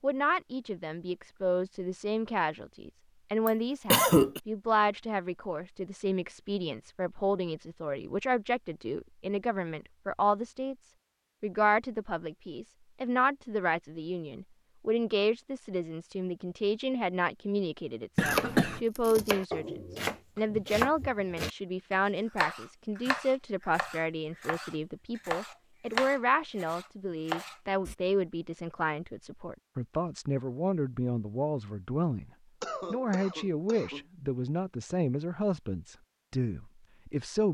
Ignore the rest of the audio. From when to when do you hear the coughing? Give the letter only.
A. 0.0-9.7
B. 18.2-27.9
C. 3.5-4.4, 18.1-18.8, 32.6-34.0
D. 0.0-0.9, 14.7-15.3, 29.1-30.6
C.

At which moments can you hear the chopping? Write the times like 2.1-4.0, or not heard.
18.2-27.9.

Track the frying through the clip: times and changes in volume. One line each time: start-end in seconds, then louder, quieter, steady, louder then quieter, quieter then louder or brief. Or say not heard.
not heard.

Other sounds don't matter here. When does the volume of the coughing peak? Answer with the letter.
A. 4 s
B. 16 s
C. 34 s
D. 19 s
A.